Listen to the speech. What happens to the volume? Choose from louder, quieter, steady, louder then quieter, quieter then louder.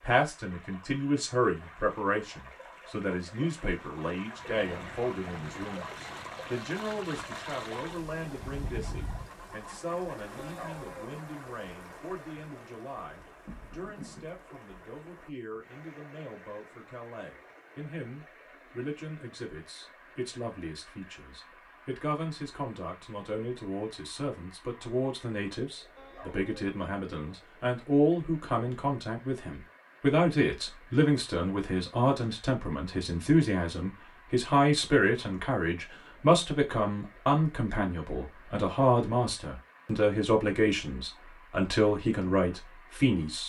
quieter then louder.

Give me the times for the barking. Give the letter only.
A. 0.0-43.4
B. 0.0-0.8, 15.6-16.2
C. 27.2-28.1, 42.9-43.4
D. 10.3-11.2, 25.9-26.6
D.